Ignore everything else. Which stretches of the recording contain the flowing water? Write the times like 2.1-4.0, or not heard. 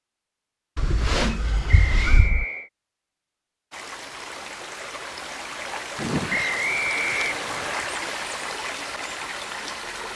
3.7-10.1.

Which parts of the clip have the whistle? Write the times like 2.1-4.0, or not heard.
1.6-2.7, 6.3-7.8.